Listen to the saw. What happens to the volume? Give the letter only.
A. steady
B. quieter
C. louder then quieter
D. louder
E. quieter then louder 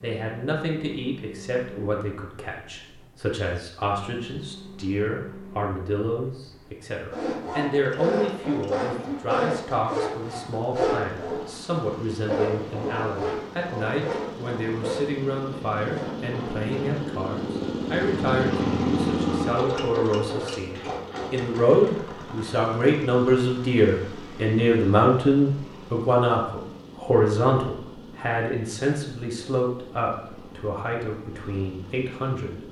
B.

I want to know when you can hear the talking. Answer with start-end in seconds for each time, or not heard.
0.0-32.6.